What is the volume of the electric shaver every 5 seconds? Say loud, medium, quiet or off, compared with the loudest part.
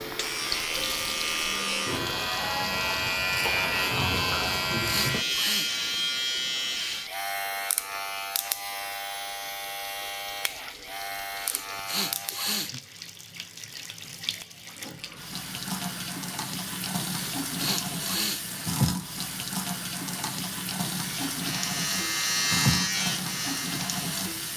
loud, loud, medium, off, loud.